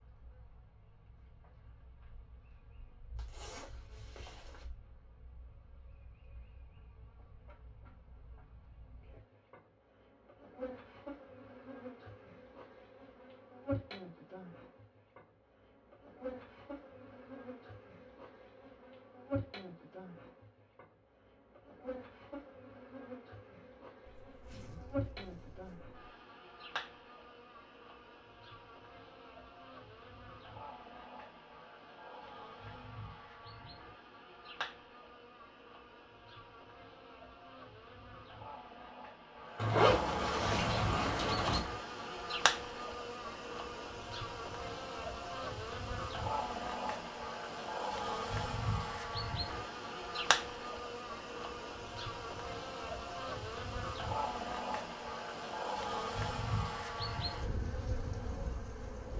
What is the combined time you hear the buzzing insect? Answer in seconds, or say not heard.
59 s.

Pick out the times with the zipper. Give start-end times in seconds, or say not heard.
3.1-4.7, 24.1-26.0, 39.5-41.6.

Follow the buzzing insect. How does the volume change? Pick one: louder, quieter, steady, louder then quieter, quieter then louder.
louder.